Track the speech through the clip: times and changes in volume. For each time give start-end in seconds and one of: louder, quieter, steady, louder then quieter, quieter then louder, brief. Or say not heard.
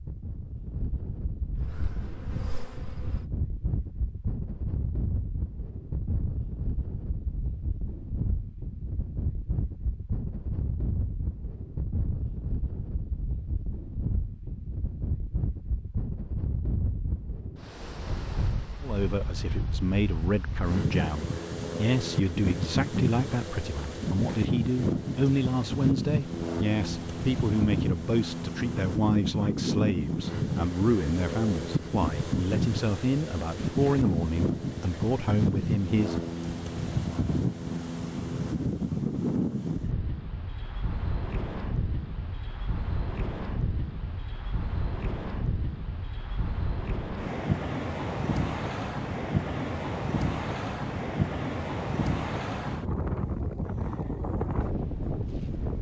18.8-36.1 steady.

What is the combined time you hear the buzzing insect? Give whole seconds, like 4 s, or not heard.
2 s.